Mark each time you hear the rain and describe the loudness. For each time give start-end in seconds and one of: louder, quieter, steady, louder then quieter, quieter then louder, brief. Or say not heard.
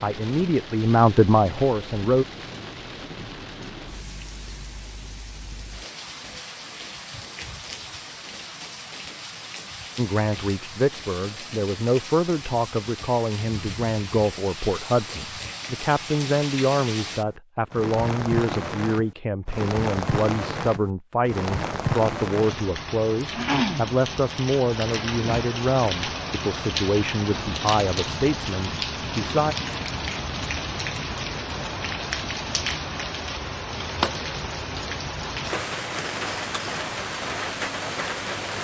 0.0-38.6 louder.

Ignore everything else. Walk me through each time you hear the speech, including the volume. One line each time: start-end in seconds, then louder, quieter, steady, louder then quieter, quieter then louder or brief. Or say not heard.
0.0-2.2 brief
9.9-29.6 steady.